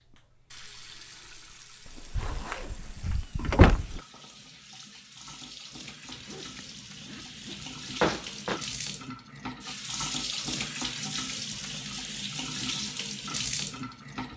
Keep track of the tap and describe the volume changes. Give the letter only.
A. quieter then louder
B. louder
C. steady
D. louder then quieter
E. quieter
B.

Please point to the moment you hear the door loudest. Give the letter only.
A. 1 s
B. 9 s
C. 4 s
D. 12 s
C.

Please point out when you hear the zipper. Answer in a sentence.
The zipper can be heard from 1.9 to 3.1 s, from 6.0 to 7.8 s and from 11.5 to 12.2 s.